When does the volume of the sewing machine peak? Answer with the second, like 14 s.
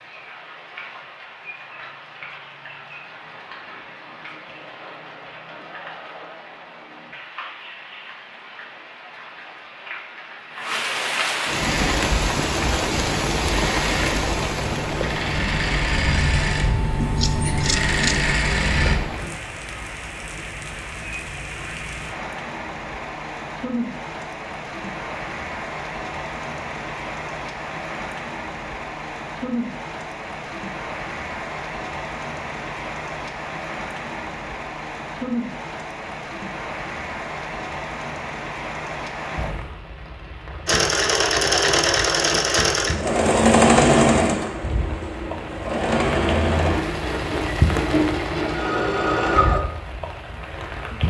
44 s.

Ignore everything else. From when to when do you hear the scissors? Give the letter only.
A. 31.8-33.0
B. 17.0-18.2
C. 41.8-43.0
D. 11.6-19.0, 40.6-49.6
B.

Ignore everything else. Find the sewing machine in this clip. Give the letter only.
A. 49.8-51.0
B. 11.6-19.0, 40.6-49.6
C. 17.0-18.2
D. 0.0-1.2
B.